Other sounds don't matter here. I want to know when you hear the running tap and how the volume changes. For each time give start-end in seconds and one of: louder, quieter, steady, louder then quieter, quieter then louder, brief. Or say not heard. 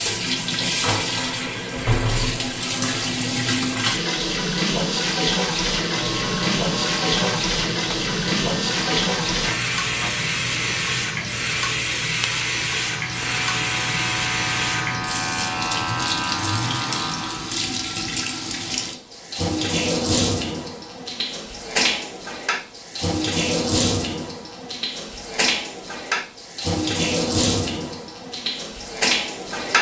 0.0-29.7 steady.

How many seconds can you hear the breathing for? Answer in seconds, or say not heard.
not heard.